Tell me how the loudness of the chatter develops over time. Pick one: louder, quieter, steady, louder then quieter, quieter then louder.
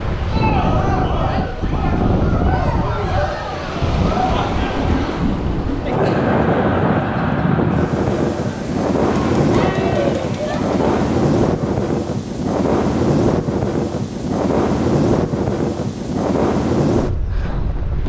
steady.